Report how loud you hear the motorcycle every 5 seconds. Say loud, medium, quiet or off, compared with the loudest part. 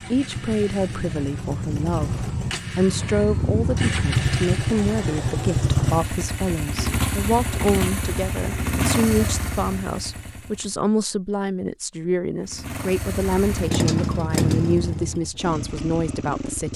loud, loud, loud, medium.